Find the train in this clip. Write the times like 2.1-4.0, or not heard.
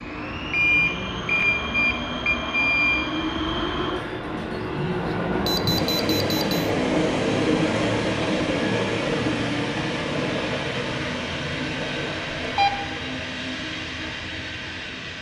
0.0-15.1.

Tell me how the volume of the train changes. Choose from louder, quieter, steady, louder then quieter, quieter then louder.
louder then quieter.